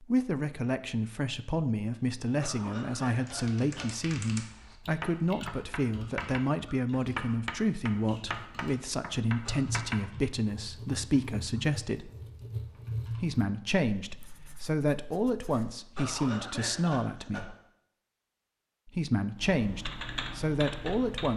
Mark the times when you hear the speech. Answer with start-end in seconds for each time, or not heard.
0.0-12.1, 13.1-17.6, 18.9-21.3.